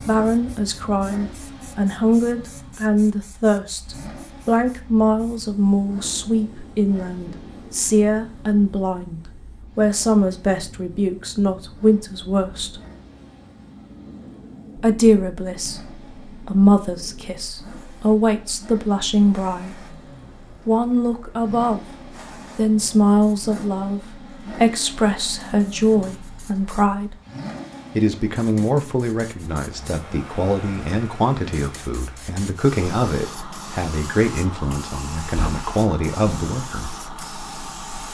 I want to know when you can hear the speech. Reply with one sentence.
You can hear the speech from 0.1 to 12.8 s, from 14.8 to 19.8 s, from 20.6 to 21.9 s, from 22.6 to 27.1 s and from 27.9 to 37.0 s.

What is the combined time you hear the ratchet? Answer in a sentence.
The ratchet can't be heard in this clip.